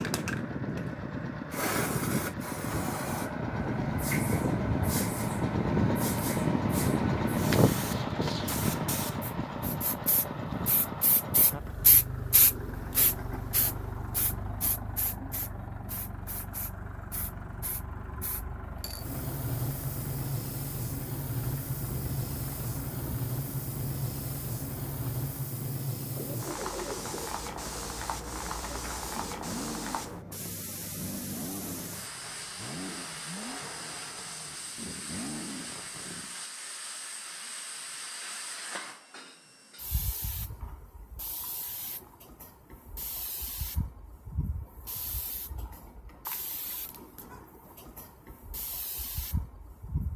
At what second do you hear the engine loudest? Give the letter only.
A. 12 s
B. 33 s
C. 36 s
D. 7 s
D.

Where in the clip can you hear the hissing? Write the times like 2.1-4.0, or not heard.
0.0-50.1.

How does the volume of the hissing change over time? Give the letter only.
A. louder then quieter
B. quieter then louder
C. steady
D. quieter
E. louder
D.